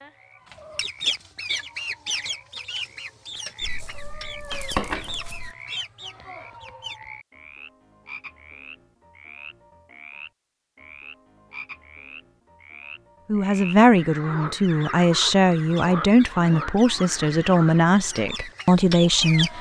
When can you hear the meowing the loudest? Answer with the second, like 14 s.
5 s.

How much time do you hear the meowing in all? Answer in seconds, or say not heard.
2 s.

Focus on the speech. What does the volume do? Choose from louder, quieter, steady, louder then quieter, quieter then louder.
steady.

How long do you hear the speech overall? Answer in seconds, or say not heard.
6 s.